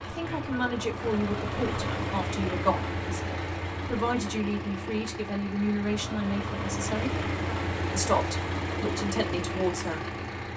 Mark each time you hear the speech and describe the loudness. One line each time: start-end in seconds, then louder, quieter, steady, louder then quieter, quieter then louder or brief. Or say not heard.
0.0-7.2 steady
7.9-10.5 brief.